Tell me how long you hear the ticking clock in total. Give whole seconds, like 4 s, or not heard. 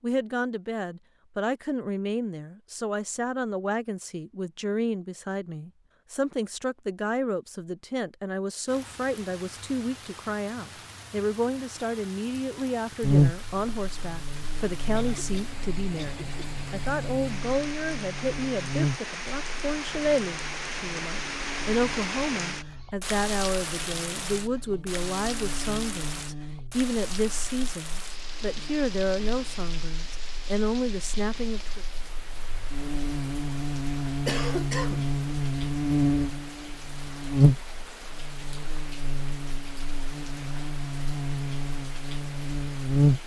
not heard.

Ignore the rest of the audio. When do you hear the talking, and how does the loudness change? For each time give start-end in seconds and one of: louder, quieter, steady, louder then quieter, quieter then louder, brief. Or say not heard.
0.0-31.9 steady.